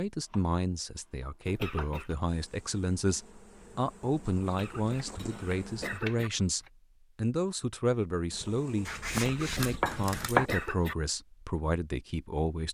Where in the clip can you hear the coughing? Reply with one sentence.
You can hear the coughing from 1.4 to 2.1 s, from 4.5 to 6.3 s and from 9.1 to 10.9 s.